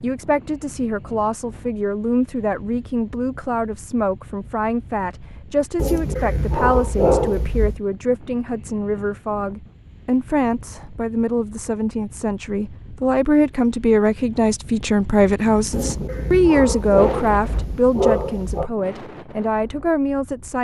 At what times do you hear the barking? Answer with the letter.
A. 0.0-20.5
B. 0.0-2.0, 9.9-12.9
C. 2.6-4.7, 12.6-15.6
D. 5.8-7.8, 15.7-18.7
D.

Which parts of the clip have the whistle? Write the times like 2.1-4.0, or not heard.
not heard.